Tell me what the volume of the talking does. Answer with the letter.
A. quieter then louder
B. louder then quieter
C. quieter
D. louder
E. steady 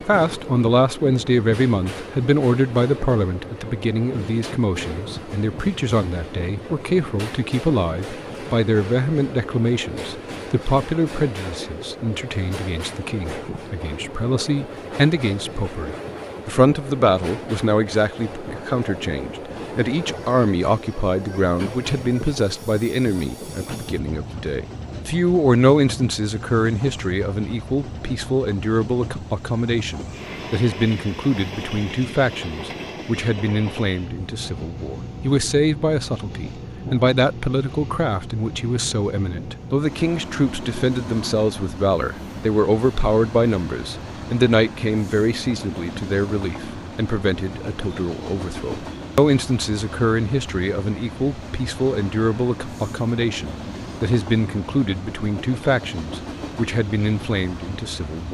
E.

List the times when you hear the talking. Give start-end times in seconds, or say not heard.
0.1-58.2.